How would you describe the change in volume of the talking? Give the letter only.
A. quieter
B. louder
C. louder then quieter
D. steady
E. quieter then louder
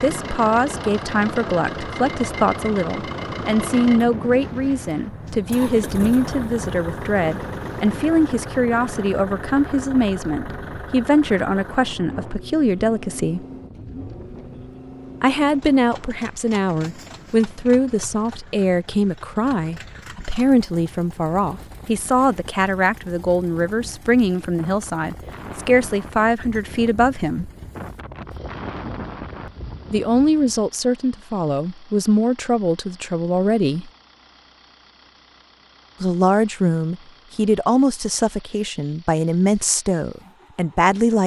D.